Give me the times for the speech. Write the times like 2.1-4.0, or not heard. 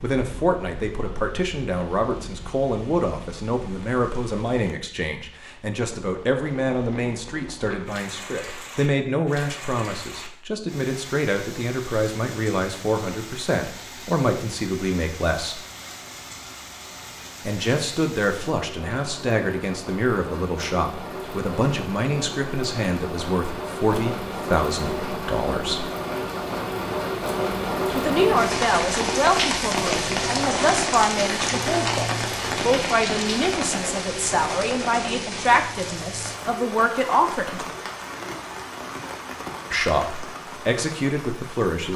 0.0-15.6, 17.4-25.9, 27.9-37.7, 39.7-41.9.